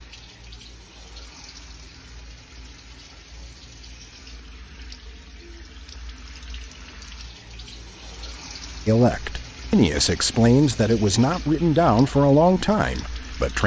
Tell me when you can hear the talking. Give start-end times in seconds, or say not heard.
8.8-13.6.